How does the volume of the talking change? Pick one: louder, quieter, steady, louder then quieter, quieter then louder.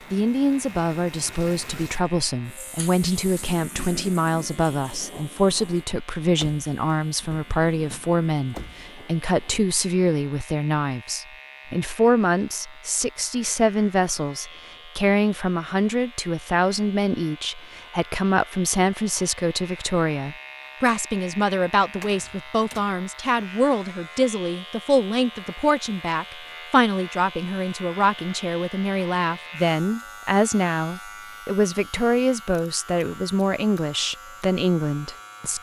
steady.